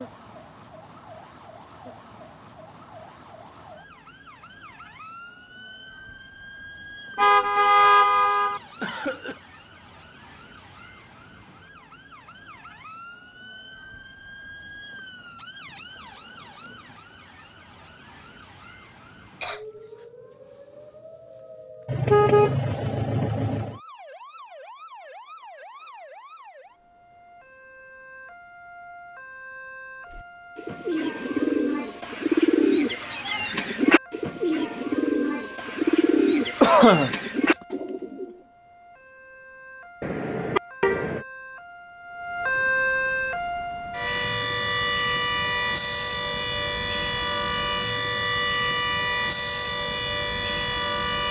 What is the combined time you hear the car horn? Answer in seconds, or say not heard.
5 s.